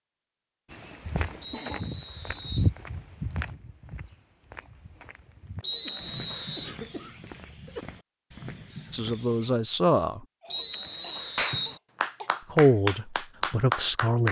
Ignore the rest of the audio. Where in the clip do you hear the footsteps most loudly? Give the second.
3 s.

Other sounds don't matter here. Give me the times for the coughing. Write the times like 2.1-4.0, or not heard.
1.5-2.1, 5.8-7.8, 10.4-12.3.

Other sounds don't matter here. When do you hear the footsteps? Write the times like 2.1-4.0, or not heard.
0.7-9.6.